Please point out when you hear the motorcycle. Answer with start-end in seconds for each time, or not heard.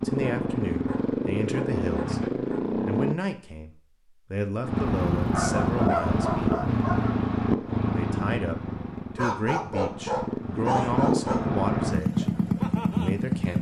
0.0-3.1, 4.6-13.5.